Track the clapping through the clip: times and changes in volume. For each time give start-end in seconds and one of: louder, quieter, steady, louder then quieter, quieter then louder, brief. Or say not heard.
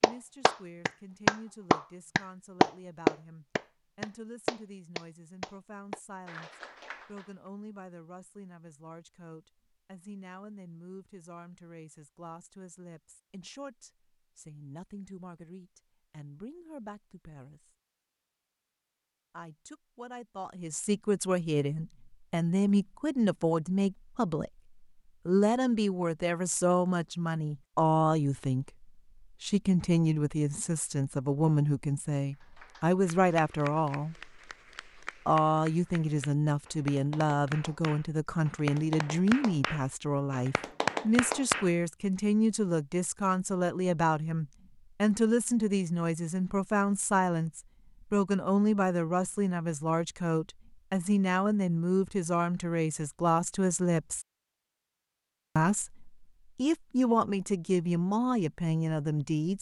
0.0-7.3 quieter
32.4-41.7 louder.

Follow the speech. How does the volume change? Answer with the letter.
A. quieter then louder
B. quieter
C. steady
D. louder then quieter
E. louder
E.